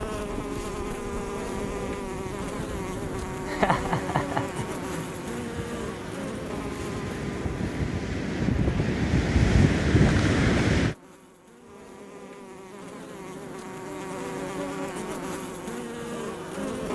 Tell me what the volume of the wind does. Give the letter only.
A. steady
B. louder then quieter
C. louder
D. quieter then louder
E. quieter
C.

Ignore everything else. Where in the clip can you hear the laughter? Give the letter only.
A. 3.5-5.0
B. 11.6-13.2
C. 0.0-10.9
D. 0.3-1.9
A.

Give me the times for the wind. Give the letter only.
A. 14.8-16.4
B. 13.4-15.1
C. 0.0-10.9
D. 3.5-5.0
C.